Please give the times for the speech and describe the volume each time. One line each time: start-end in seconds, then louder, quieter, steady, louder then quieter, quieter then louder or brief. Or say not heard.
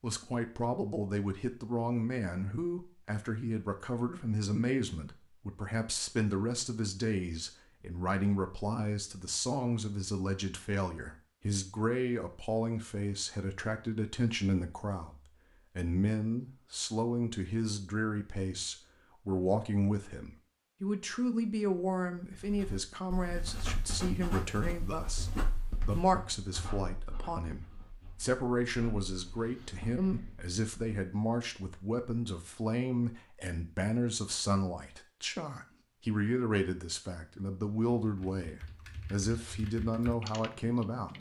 0.0-41.1 steady.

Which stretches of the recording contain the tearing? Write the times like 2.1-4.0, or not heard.
not heard.